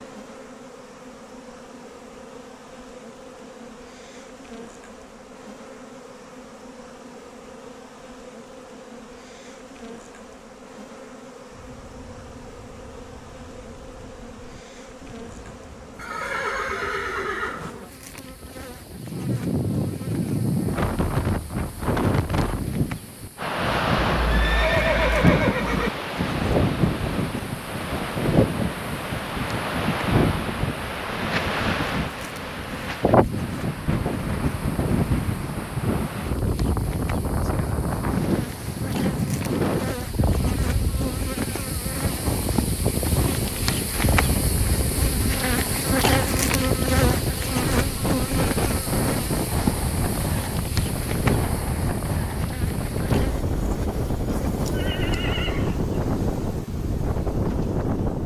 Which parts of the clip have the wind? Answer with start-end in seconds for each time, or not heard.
11.5-58.2.